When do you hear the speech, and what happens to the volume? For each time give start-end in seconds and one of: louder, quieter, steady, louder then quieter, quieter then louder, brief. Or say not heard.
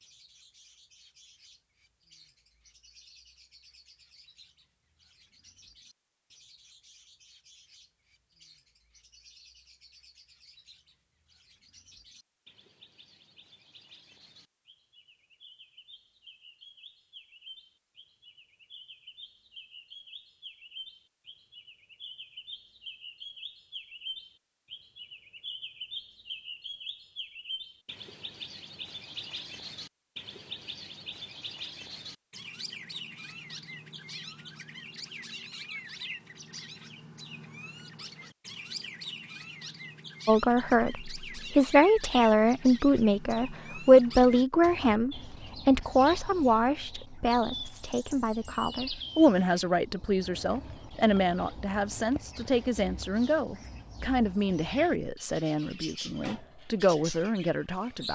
40.2-58.0 quieter.